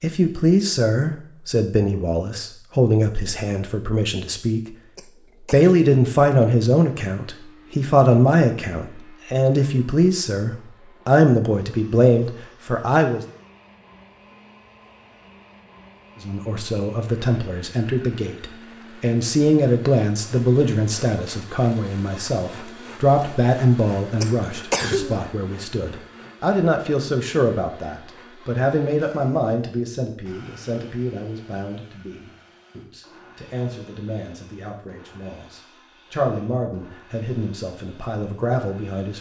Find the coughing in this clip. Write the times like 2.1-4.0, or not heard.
5.0-5.8, 24.2-25.2.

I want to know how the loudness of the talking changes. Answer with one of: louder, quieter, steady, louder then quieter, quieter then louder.
quieter.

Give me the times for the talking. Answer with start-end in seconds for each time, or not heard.
0.0-4.8, 5.5-13.2, 16.2-39.1.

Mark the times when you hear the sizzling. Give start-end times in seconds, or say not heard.
not heard.